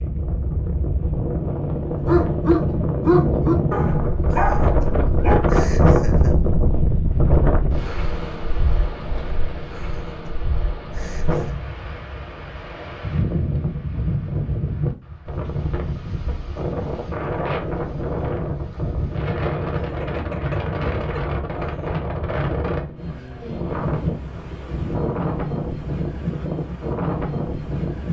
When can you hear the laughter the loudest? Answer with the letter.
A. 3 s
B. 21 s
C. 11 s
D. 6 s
D.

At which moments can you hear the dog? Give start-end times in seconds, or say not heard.
2.0-5.5.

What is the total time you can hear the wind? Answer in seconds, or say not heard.
28 s.